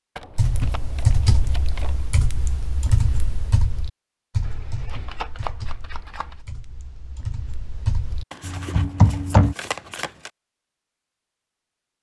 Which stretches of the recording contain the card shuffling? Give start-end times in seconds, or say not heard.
0.1-2.0, 4.4-6.5, 8.3-10.3.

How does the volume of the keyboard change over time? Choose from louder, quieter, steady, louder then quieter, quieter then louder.
quieter then louder.